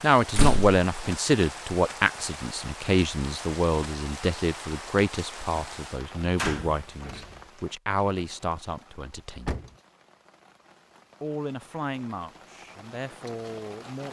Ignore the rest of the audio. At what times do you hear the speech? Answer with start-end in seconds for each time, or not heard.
0.0-9.6, 11.2-14.0.